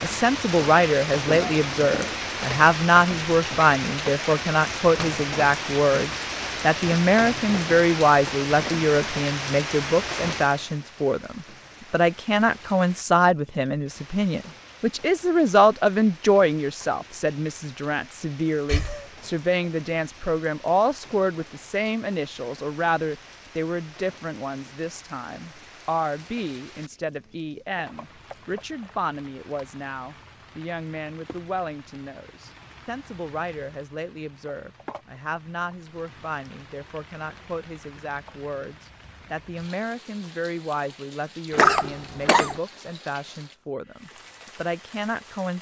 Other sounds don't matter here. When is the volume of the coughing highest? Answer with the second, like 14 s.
42 s.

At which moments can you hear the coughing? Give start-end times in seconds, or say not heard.
1.2-2.4, 18.6-19.1, 41.5-42.5.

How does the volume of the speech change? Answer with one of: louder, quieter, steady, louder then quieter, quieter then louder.
quieter.